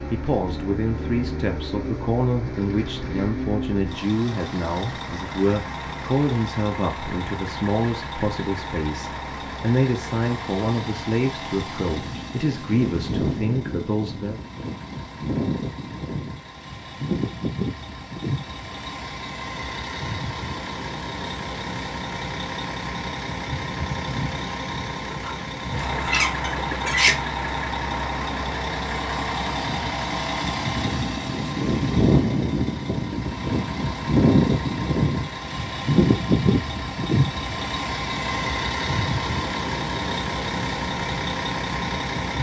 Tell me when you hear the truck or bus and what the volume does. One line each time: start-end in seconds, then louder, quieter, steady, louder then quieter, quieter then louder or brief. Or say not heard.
0.0-42.3 louder.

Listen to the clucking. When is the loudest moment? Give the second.
27 s.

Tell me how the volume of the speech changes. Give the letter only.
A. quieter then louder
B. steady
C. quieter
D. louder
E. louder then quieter
B.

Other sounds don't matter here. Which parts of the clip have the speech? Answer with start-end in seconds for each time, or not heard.
0.0-14.4.